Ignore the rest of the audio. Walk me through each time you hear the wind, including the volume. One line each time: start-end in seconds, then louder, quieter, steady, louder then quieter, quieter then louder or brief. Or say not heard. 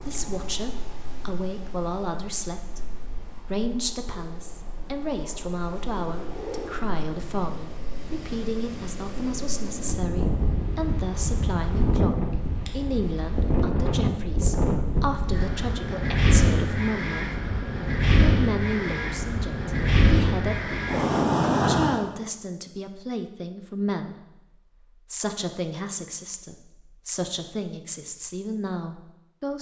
0.0-22.0 louder.